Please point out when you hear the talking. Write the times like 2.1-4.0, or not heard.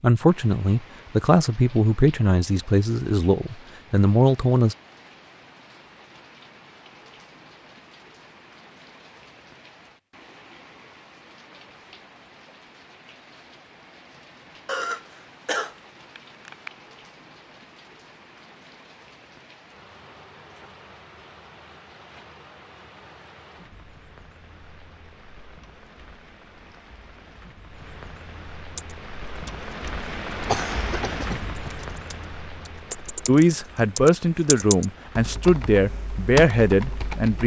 0.0-4.8, 33.2-37.4.